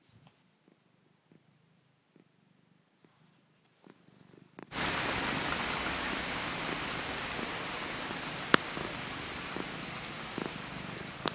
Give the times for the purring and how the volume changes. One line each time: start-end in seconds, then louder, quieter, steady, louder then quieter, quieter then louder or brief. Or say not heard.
0.0-11.3 louder.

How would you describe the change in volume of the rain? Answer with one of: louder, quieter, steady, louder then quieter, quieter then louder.
quieter.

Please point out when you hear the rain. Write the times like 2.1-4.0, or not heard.
4.7-11.3.